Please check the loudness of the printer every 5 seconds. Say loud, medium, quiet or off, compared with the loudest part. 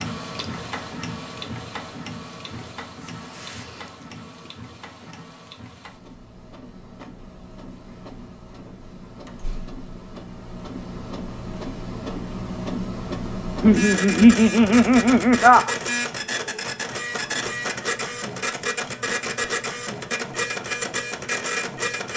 medium, quiet, loud, loud, loud.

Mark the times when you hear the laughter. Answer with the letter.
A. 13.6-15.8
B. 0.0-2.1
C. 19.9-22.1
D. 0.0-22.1
A.